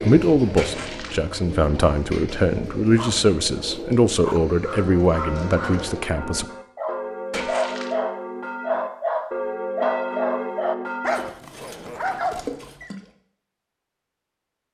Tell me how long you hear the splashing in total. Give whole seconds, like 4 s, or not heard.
2 s.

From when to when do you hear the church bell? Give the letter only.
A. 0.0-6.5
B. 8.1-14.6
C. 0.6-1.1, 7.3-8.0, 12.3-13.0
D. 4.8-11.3
D.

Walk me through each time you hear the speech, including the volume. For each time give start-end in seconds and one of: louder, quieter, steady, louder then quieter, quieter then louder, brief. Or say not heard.
0.0-6.5 steady.